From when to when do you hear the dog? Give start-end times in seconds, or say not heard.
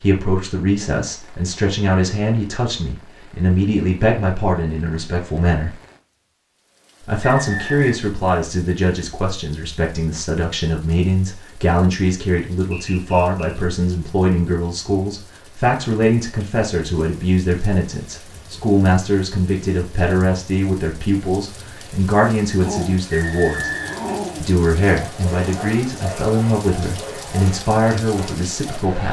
22.6-29.0.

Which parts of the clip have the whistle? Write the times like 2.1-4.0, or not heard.
7.2-8.0, 12.7-13.6, 23.1-24.2.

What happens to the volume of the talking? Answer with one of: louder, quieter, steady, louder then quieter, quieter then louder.
steady.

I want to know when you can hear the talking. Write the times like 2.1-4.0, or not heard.
0.0-5.8, 7.0-23.7, 24.4-29.0.